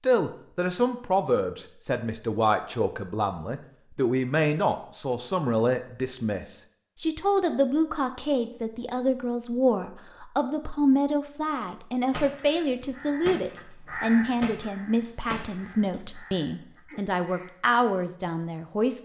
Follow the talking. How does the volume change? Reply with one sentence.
The loudness of the talking stays about the same.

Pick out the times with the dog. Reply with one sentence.
The dog can't be heard in this clip.